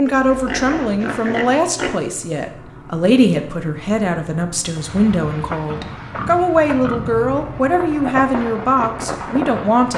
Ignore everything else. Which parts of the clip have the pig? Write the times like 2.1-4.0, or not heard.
0.1-2.0, 5.7-7.2.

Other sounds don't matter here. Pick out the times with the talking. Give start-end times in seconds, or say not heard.
0.0-9.9.